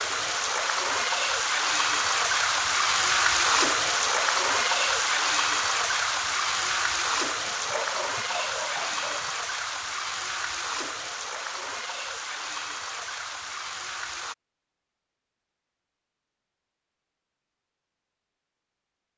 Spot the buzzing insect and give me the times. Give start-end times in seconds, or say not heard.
not heard.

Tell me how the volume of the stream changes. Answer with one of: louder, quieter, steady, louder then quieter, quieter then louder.
quieter.